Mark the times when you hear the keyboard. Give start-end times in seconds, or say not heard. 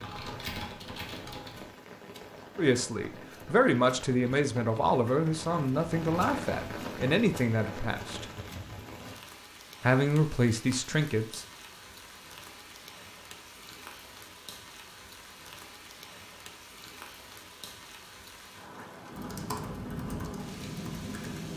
0.0-1.6, 19.1-21.5.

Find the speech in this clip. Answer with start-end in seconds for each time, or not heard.
2.5-8.2, 9.8-11.4.